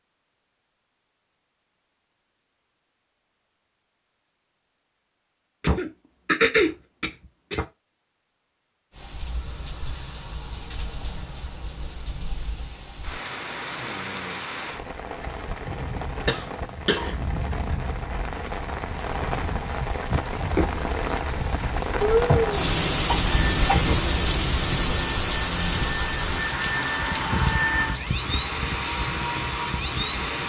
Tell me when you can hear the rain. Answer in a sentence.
You can hear the rain from 8.9 to 30.4 s.